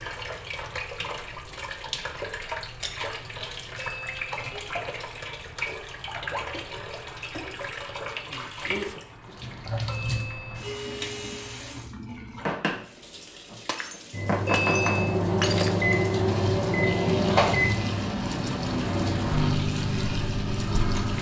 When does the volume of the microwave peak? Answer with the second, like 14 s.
17 s.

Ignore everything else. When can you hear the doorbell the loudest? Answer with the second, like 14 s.
15 s.